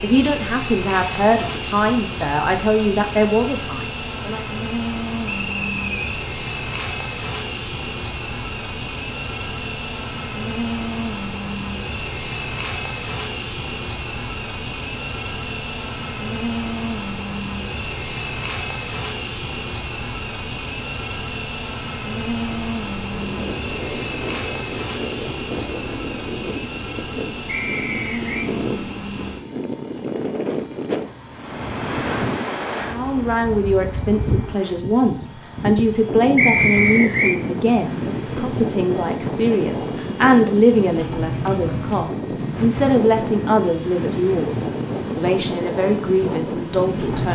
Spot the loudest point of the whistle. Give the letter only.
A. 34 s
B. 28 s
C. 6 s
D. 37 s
D.